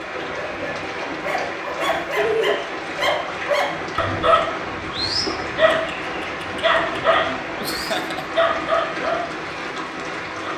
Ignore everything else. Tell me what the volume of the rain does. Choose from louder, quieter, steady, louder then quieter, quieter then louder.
steady.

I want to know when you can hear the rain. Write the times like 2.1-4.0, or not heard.
0.0-10.5.